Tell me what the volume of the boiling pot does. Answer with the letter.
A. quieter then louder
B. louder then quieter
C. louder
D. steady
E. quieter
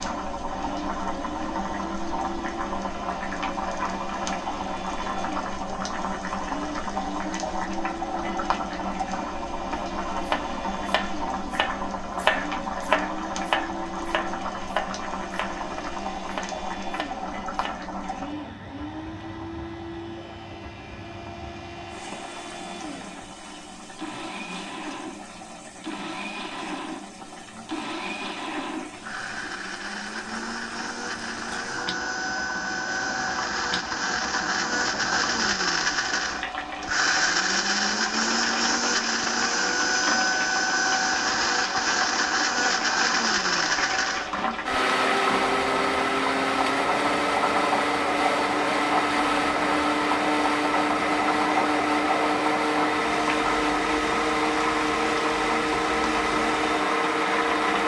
A.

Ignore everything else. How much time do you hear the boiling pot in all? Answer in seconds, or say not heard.
58 s.